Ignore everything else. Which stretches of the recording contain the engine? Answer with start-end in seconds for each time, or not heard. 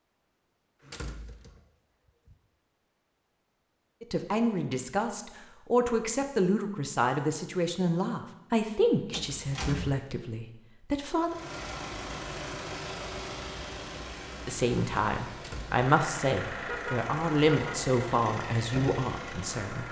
11.2-19.8.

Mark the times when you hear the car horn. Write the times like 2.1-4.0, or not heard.
16.6-17.9.